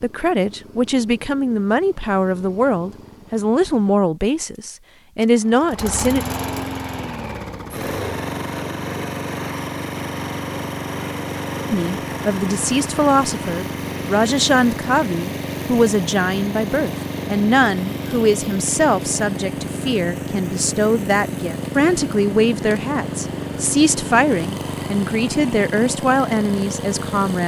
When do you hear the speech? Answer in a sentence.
You can hear the speech from 0.0 to 6.2 s and from 11.7 to 27.4 s.